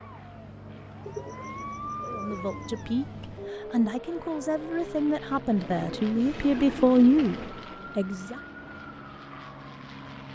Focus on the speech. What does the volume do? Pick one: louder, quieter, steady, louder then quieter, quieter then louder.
louder.